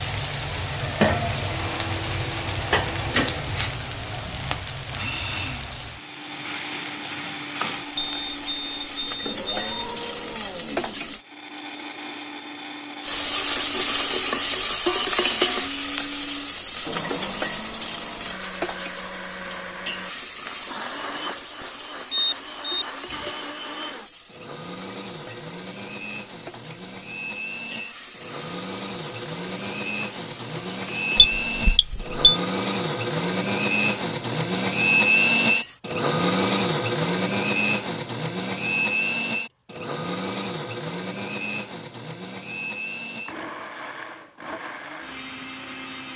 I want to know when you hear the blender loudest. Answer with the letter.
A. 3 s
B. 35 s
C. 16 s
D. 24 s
B.